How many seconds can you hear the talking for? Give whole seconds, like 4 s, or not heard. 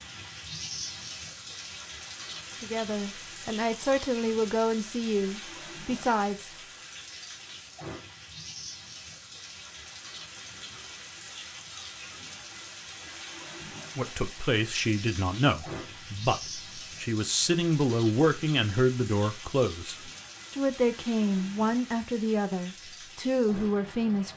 14 s.